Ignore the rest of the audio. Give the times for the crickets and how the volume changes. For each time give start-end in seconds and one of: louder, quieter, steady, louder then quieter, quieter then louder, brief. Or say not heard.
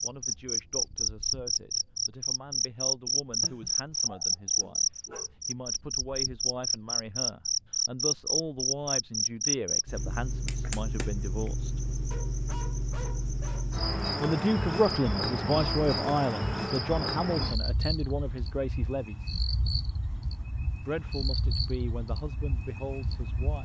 0.0-23.6 quieter.